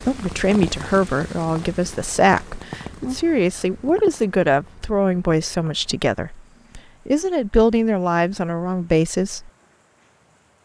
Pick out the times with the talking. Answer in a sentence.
The talking can be heard from 0.0 to 9.5 s.